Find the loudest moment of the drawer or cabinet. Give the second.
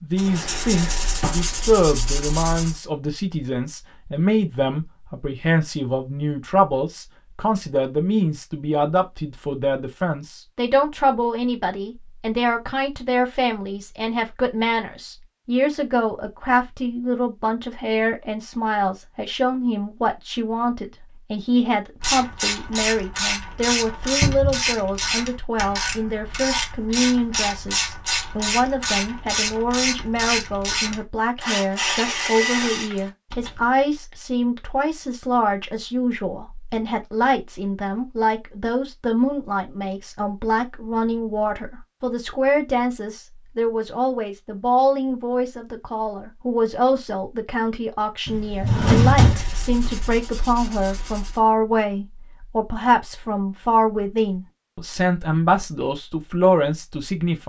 49 s.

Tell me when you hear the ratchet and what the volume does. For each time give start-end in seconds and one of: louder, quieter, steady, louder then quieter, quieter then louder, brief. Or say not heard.
22.0-33.6 steady.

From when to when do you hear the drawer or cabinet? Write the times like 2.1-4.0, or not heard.
0.2-1.5, 24.2-24.6, 48.2-50.1.